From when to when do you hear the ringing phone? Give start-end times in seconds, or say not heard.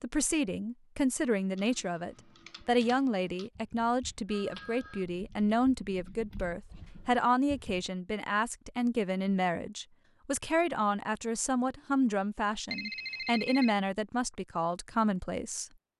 4.2-5.0, 12.7-13.8.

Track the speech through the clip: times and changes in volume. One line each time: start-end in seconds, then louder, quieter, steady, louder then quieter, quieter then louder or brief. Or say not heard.
0.0-15.7 steady.